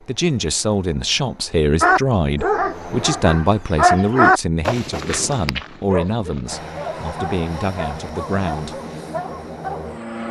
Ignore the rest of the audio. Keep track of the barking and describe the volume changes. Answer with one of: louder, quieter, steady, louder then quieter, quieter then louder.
louder then quieter.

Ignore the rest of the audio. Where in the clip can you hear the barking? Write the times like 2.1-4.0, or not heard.
1.8-9.9.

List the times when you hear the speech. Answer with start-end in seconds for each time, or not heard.
0.1-8.8.